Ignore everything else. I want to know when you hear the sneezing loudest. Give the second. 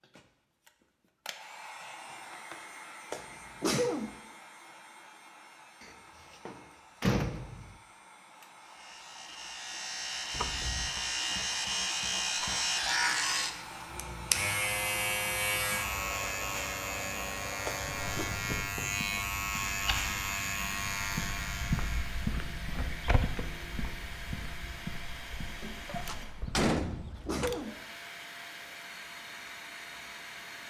4 s.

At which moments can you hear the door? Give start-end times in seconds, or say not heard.
5.8-7.8, 10.3-10.9, 25.6-27.5.